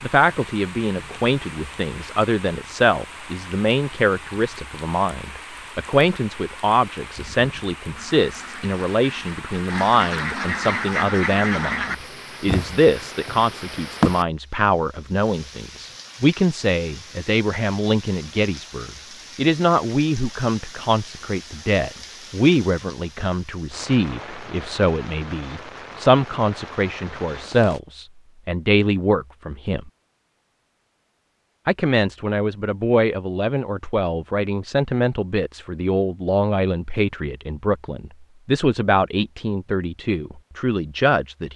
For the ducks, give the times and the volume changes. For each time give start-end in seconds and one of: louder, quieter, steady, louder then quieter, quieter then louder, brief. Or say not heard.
8.0-14.2 louder then quieter.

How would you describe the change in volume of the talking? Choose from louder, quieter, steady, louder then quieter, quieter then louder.
steady.